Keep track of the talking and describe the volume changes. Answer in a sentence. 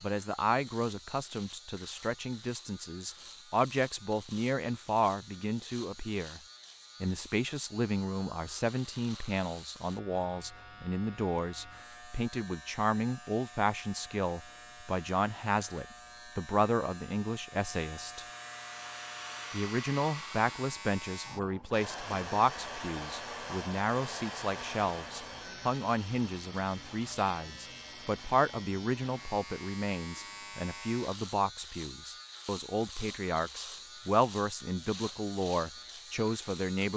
The loudness of the talking stays about the same.